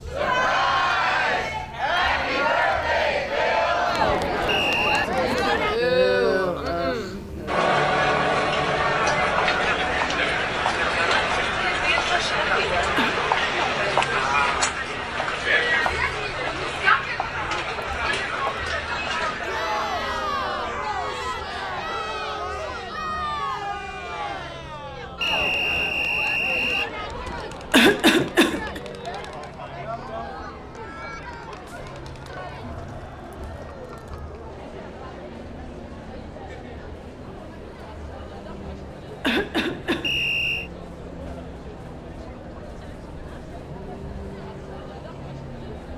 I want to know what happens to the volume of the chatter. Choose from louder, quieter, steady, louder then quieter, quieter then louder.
quieter.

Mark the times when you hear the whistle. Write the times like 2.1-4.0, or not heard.
4.5-5.1, 25.2-26.9, 40.0-40.7.